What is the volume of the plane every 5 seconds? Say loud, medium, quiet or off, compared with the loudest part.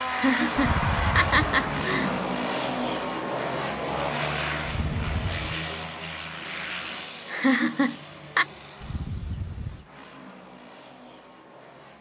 loud, medium, quiet.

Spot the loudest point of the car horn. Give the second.
1 s.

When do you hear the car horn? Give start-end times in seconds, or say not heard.
0.6-2.2, 4.7-5.6, 8.8-9.9.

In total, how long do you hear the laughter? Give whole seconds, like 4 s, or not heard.
3 s.